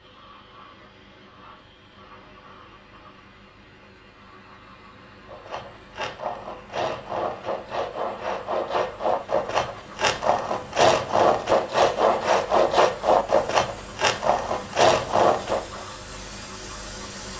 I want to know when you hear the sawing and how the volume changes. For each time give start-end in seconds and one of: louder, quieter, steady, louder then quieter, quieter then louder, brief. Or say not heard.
5.2-15.8 louder.